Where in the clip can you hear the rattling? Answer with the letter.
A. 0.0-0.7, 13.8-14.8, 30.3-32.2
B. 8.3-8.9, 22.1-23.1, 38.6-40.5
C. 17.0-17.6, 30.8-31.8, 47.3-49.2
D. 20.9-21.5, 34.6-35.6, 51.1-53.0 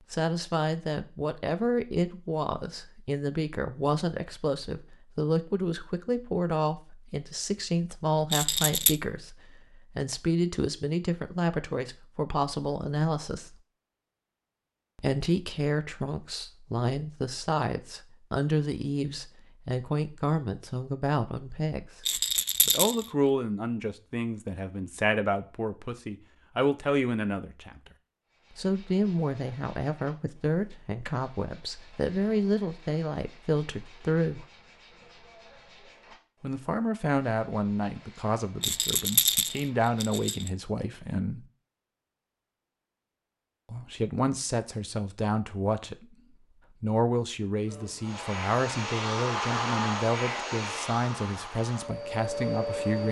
B.